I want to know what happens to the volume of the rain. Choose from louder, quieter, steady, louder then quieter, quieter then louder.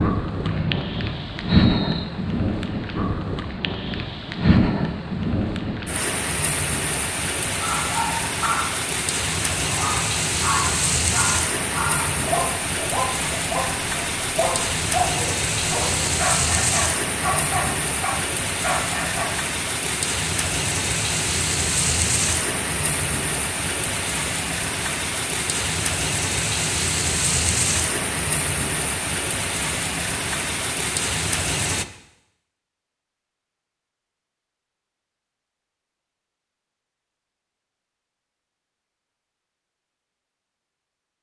steady.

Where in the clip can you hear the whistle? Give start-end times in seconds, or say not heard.
0.5-2.0.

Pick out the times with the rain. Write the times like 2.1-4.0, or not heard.
0.0-31.9.